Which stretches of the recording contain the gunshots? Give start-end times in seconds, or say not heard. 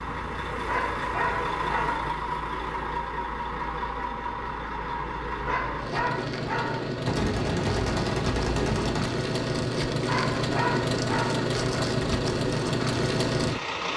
7.0-9.1.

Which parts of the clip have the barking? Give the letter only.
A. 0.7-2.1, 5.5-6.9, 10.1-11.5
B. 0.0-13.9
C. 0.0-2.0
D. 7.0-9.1
A.